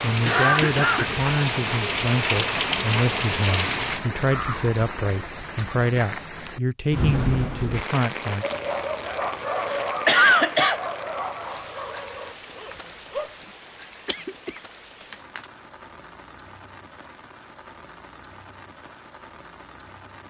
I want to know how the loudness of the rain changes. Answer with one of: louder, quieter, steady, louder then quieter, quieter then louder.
quieter.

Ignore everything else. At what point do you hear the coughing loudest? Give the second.
10 s.